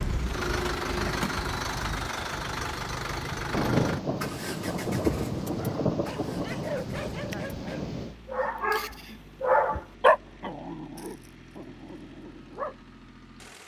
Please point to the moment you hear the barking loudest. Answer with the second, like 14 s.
10 s.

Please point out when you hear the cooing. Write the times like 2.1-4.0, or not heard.
not heard.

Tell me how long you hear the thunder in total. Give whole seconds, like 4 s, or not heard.
5 s.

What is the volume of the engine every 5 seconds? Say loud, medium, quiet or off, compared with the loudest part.
loud, medium, quiet.